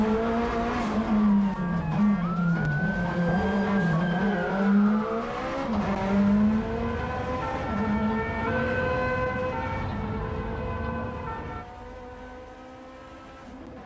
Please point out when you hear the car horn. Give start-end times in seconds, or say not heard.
not heard.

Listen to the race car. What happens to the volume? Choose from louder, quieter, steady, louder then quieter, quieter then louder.
quieter.